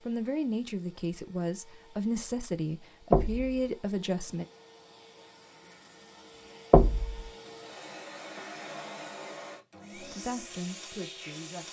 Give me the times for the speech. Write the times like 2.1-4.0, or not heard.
0.1-4.5, 9.9-11.6.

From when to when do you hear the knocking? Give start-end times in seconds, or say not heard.
3.1-3.6, 6.7-7.3.